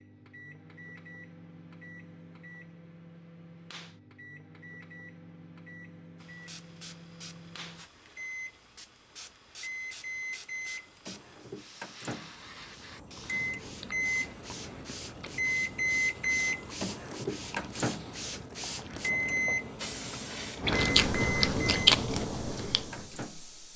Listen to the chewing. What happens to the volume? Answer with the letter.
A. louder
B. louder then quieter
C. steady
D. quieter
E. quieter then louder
A.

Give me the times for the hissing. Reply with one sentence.
The hissing can be heard from 6.2 to 23.7 s.